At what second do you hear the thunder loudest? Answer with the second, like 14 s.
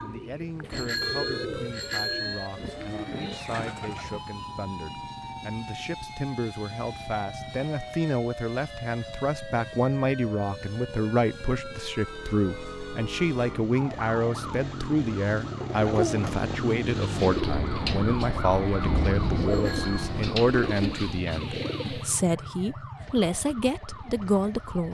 19 s.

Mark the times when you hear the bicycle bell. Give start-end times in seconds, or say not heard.
0.7-2.5, 19.4-20.1.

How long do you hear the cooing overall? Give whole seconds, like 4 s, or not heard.
11 s.